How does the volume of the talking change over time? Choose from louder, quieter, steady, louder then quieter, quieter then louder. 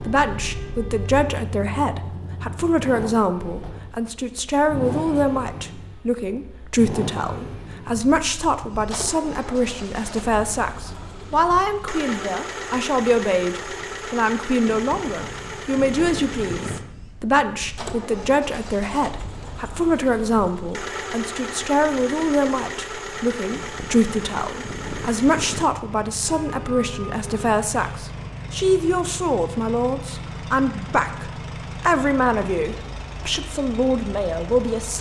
steady.